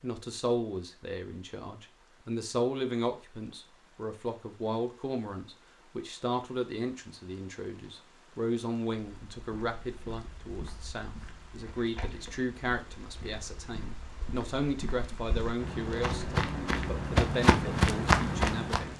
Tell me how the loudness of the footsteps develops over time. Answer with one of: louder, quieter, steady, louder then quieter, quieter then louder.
louder.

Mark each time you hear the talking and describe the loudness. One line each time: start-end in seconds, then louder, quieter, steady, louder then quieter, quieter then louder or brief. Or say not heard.
0.0-18.9 steady.